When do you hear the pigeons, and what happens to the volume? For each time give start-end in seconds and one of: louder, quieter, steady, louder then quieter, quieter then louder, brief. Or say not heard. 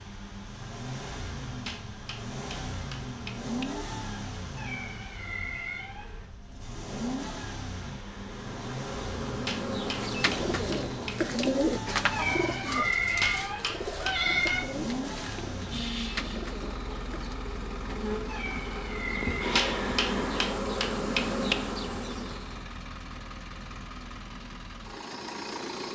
9.8-17.4 quieter.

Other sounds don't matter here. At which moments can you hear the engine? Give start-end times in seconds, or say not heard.
0.0-25.9.